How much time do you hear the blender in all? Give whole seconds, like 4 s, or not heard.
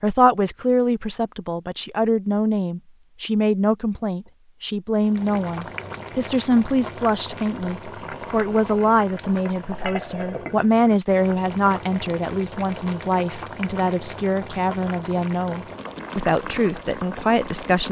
not heard.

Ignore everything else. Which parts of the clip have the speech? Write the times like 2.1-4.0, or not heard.
0.0-17.8.